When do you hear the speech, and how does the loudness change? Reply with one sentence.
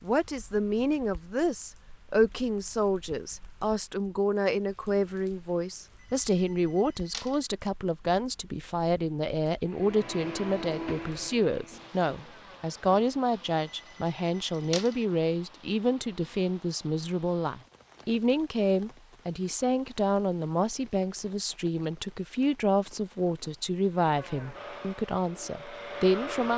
You can hear the speech from 0.0 to 26.5 s, at a steady volume.